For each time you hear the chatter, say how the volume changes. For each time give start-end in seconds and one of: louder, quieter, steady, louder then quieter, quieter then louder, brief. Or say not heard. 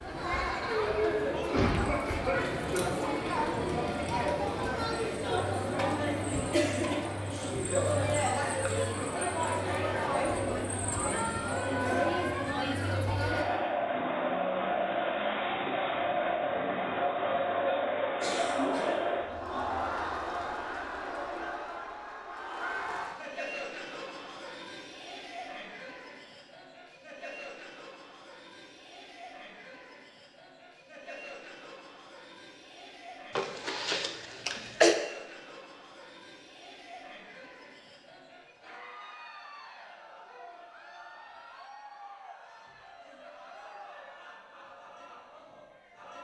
0.0-46.1 quieter.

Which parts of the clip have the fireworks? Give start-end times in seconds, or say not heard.
not heard.